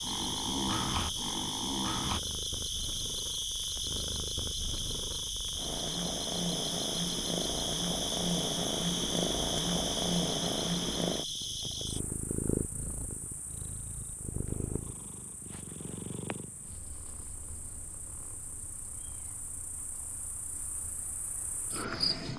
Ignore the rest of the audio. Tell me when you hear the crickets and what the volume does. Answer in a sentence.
You can hear the crickets from 0.0 to 22.3 s, getting quieter then louder.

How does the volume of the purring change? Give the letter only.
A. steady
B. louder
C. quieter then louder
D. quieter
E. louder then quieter
E.